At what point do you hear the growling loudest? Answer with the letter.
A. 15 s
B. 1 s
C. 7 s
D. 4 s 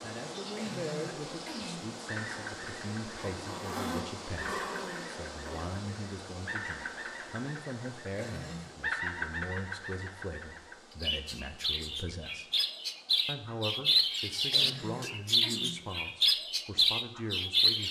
D.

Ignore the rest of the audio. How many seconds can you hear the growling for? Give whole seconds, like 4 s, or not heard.
3 s.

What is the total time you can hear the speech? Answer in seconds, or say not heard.
17 s.